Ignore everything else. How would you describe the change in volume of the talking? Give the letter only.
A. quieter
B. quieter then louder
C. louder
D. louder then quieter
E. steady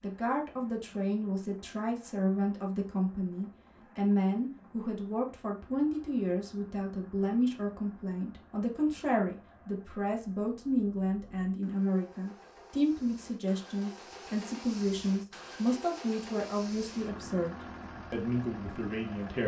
E.